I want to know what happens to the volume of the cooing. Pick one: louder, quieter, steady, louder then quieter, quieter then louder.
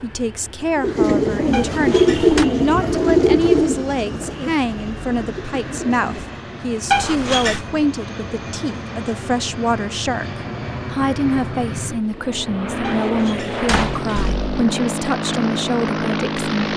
quieter.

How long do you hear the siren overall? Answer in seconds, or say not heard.
not heard.